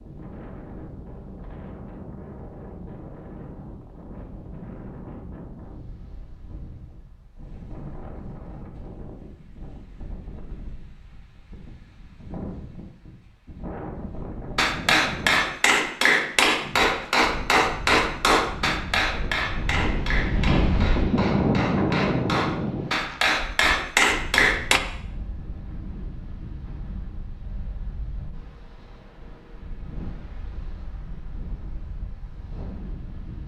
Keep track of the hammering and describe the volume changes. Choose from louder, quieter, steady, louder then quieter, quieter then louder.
quieter then louder.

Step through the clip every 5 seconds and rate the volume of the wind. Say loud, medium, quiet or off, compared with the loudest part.
quiet, quiet, quiet, medium, loud, quiet, quiet.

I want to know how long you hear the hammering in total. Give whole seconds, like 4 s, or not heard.
10 s.